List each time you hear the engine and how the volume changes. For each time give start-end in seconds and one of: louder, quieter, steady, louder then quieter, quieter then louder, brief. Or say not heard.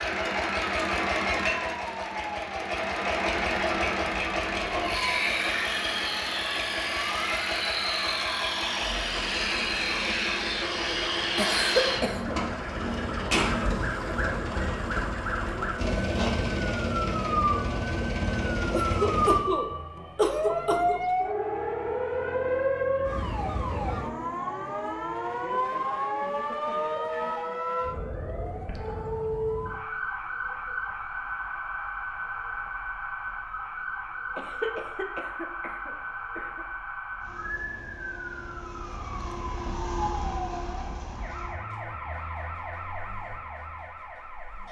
0.0-19.4 steady
37.1-44.6 louder then quieter.